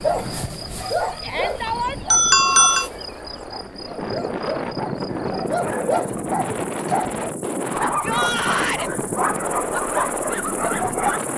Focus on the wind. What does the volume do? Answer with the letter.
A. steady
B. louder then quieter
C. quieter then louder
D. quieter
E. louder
E.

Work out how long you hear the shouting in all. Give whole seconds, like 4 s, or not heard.
2 s.